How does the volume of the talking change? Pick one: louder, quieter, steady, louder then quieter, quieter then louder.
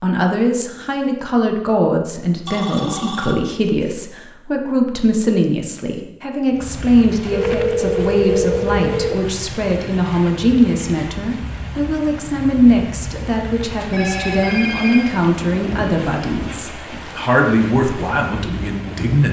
steady.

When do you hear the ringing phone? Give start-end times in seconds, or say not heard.
2.5-4.0, 7.3-9.2, 13.9-15.2.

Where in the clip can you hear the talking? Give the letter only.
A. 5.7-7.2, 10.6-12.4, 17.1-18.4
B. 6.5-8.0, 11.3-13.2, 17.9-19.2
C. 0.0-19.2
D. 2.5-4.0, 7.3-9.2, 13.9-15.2
C.